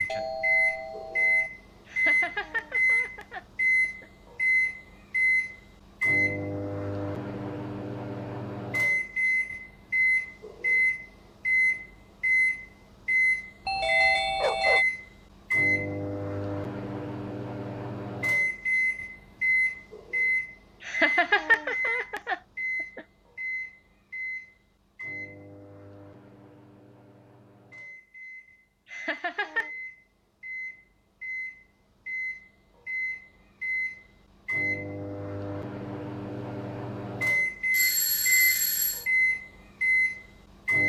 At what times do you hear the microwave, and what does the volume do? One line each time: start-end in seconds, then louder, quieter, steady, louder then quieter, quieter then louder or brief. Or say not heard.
0.0-40.8 quieter then louder.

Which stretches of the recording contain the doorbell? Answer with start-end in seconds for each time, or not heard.
0.1-1.5, 13.7-14.8, 37.7-39.0.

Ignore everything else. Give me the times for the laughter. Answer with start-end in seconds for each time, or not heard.
1.9-4.0, 20.8-23.0, 28.9-29.7.